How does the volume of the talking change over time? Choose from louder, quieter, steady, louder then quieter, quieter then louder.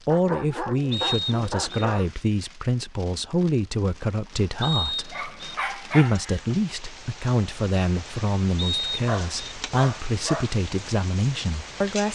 steady.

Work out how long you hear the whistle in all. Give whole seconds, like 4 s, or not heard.
3 s.